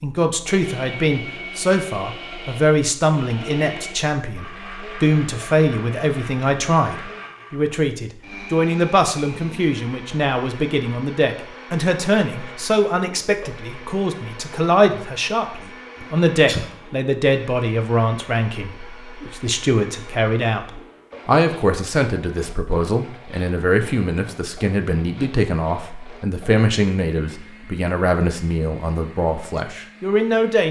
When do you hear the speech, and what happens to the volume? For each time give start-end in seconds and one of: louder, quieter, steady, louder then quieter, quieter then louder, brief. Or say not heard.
0.0-30.6 steady.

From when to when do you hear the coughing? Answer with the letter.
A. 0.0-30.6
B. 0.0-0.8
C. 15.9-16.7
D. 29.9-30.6
C.